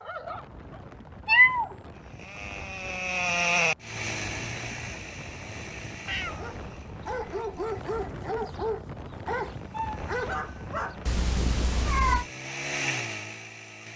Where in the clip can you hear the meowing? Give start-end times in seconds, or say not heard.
1.2-1.8, 6.0-7.7, 11.1-12.2.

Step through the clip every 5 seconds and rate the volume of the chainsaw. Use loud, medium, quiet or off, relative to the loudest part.
loud, quiet, medium.